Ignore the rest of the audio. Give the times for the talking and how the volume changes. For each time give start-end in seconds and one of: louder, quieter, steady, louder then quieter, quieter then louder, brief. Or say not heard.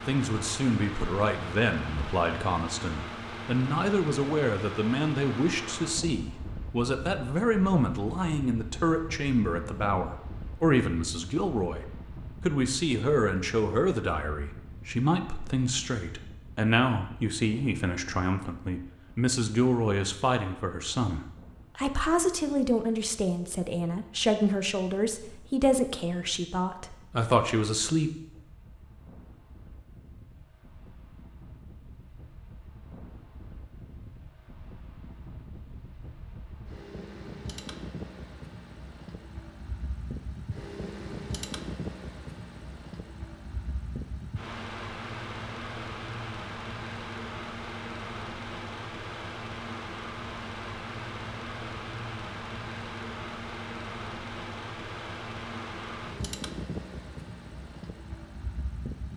0.1-28.1 steady.